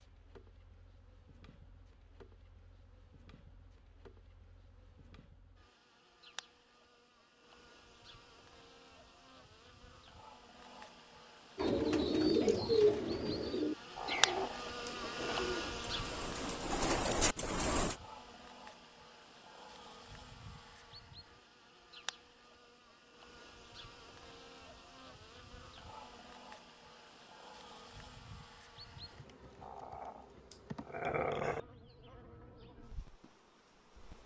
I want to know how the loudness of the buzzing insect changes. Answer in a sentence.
The loudness of the buzzing insect goes up, then down.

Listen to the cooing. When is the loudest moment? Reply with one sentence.
The loudest moment of the cooing is at 13 seconds.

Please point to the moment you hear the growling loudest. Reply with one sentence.
The volume of the growling peaks at 31 seconds.